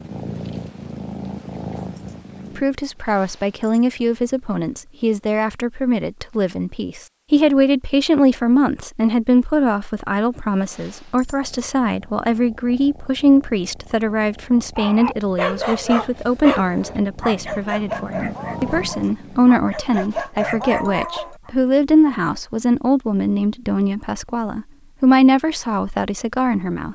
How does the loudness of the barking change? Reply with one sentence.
The loudness of the barking goes down, then up.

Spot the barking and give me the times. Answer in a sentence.
You can hear the barking from 14.8 to 21.5 s.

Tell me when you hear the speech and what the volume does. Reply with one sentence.
The speech can be heard from 2.5 to 26.9 s, at a steady volume.